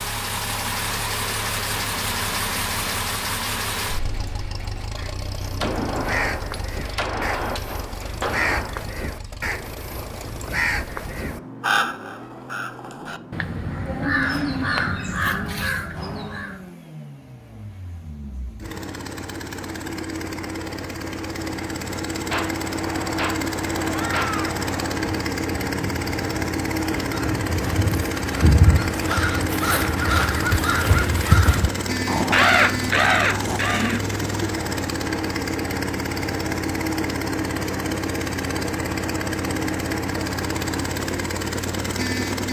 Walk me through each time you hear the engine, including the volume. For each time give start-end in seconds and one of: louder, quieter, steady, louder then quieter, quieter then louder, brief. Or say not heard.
0.0-42.4 quieter then louder.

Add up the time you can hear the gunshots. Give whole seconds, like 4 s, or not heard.
6 s.